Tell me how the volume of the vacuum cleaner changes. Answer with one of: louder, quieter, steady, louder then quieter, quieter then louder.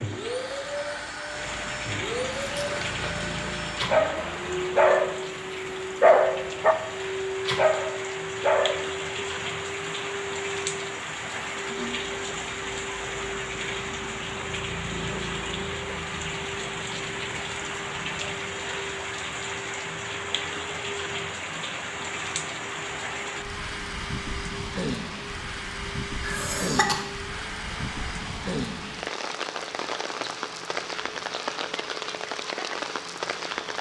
quieter.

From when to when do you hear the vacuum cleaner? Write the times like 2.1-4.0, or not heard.
0.0-33.7.